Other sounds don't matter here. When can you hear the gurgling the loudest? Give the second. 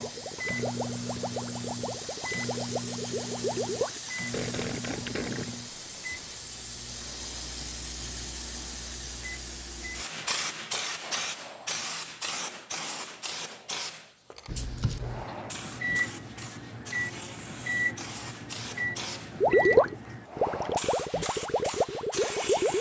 20 s.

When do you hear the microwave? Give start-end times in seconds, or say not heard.
0.0-10.1, 14.4-20.2.